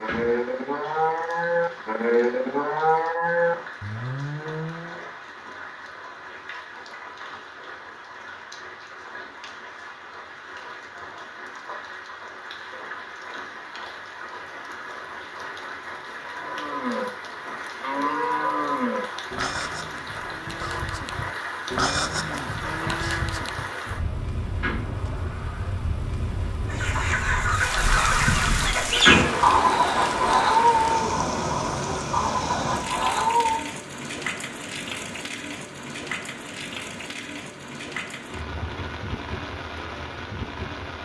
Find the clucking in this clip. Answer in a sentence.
The clucking can be heard from 26.6 to 33.6 s.